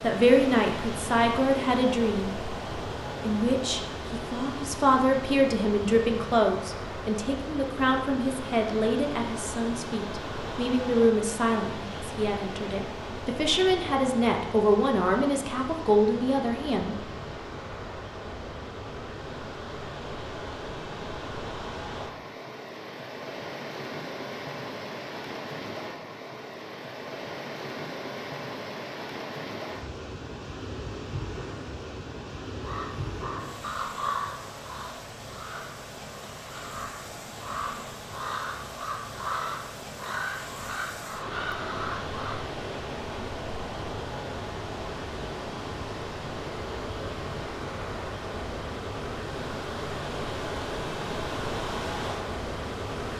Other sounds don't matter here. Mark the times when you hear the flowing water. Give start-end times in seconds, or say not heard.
0.0-53.1.